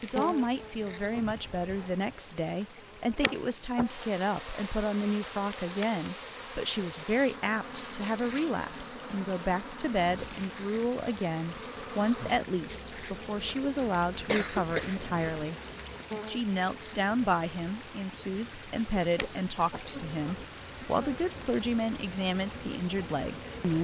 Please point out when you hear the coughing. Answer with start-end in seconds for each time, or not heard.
14.2-15.4.